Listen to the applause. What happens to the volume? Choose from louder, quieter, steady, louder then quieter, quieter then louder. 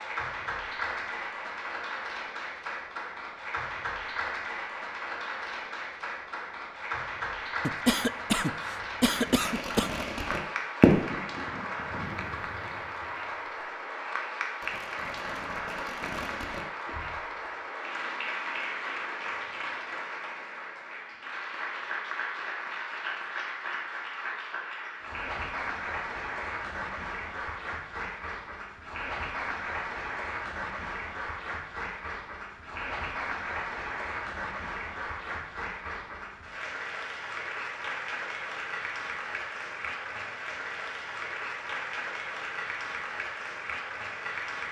steady.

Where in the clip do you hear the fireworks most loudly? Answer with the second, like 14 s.
11 s.